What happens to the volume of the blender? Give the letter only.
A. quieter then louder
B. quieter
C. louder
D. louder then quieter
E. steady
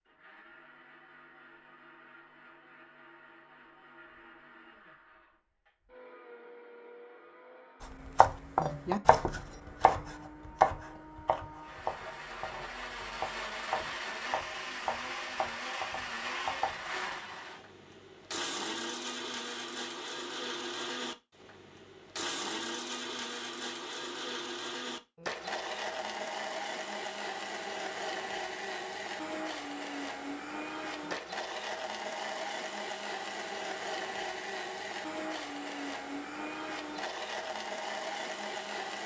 C.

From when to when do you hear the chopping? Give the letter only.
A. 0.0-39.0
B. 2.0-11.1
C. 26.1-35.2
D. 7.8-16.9
D.